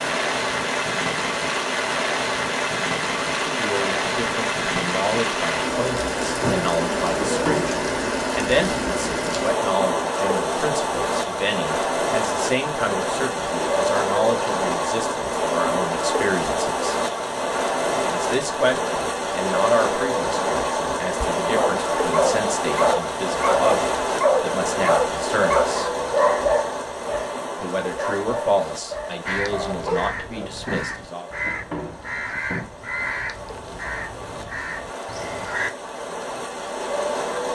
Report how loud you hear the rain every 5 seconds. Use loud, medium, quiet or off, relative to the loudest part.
loud, loud, loud, loud, loud, medium, quiet, medium.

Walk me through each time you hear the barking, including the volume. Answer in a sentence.
You can hear the barking from 21.2 to 30.5 s, getting quieter.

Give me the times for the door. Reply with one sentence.
You can hear the door from 6.4 to 7.8 s and from 30.6 to 32.6 s.